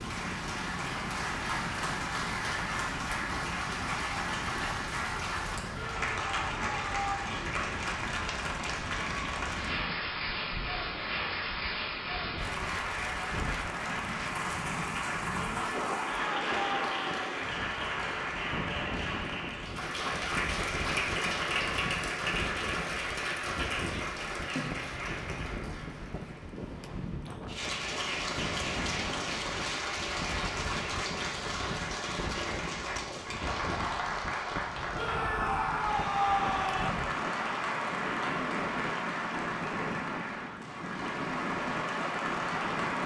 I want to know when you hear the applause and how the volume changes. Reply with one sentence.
The applause can be heard from 0.0 to 43.0 s, at a steady volume.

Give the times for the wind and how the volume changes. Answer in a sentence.
You can hear the wind from 0.0 to 43.0 s, at a steady volume.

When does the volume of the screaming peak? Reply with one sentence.
The loudest moment of the screaming is at 36 seconds.